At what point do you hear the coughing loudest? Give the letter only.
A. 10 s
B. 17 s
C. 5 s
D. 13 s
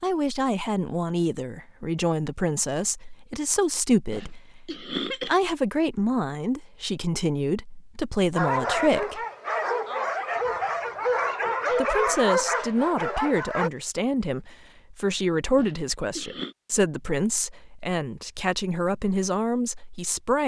C.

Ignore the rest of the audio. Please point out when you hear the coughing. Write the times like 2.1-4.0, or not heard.
4.1-5.3, 15.6-16.6.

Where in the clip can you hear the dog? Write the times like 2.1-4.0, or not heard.
8.3-13.7.